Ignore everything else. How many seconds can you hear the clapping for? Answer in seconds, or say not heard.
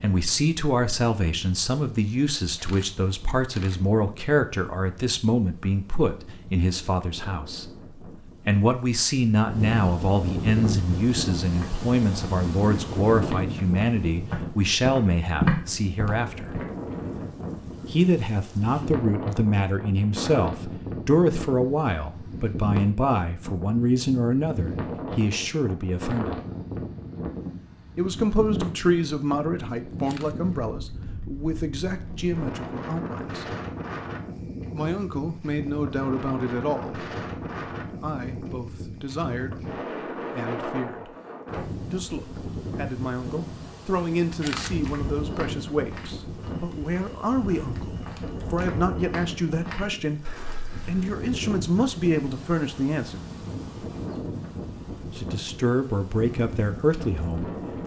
not heard.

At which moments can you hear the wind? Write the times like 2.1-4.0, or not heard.
0.0-57.8.